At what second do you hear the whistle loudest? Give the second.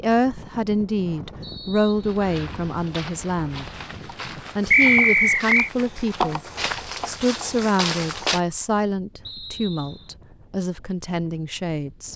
5 s.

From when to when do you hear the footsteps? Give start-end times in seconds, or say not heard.
2.0-8.4.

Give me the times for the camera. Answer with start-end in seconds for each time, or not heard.
not heard.